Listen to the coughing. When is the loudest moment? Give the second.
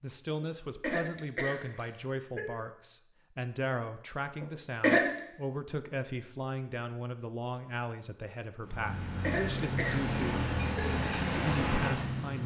5 s.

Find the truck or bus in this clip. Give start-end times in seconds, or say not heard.
8.6-12.4.